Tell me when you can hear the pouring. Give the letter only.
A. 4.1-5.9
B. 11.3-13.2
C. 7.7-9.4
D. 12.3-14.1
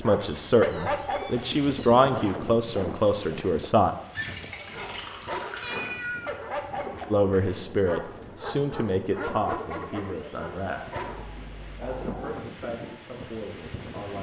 A.